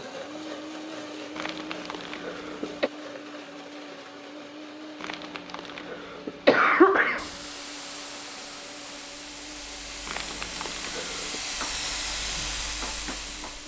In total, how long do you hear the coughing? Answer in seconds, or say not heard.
5 s.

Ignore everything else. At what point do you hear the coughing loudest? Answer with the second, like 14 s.
7 s.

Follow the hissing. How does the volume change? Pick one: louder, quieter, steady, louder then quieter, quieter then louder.
louder.